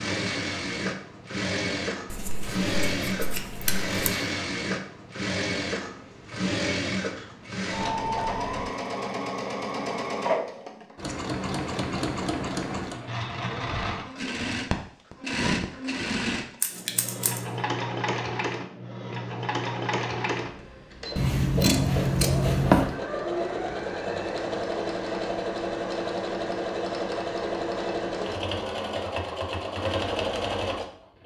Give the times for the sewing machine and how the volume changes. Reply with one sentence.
The sewing machine can be heard from 0.0 to 31.2 s, at a steady volume.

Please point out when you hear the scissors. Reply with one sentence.
The scissors can be heard from 2.1 to 4.1 s, from 16.6 to 17.4 s and from 21.1 to 22.9 s.